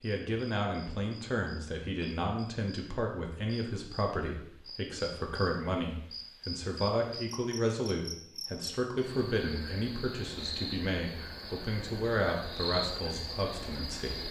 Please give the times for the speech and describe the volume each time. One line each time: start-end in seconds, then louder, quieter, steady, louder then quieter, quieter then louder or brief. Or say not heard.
0.0-14.2 steady.